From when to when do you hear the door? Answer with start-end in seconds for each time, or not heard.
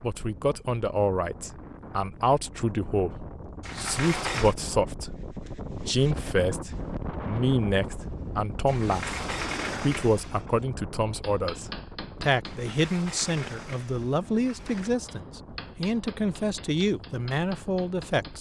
3.6-4.5, 8.7-10.5, 12.4-14.9.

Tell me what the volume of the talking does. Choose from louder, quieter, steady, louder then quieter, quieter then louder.
steady.